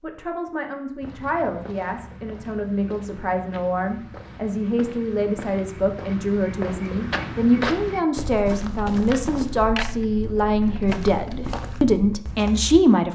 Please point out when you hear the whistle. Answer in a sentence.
The whistle can't be heard in this clip.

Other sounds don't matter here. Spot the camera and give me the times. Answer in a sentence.
The camera can be heard from 9.2 to 11.0 s.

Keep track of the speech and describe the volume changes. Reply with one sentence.
The loudness of the speech goes up.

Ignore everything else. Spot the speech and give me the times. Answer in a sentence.
The speech can be heard from 0.0 to 13.1 s.